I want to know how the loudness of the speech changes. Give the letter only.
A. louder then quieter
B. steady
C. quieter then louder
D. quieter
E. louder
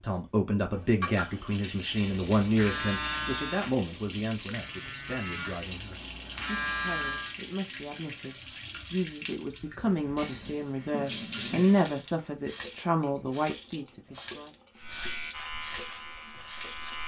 C.